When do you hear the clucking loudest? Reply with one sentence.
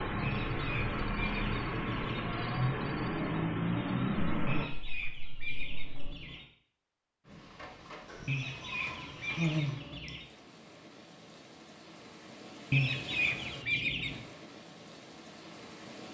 The volume of the clucking peaks at 13 seconds.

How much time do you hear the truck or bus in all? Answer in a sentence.
You can hear the truck or bus for 5 seconds altogether.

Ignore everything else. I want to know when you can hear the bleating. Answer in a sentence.
The bleating can be heard from 4.2 to 6.2 s and from 8.1 to 9.8 s.